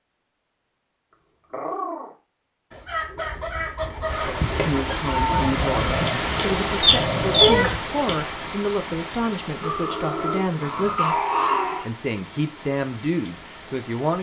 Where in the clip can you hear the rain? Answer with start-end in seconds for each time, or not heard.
4.0-14.1.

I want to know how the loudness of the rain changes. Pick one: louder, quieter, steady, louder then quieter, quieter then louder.
quieter.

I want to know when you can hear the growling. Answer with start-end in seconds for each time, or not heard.
1.5-2.1, 5.2-7.7, 9.6-11.9.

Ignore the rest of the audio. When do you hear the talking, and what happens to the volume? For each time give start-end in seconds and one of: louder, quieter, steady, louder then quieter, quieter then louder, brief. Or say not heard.
4.2-14.1 steady.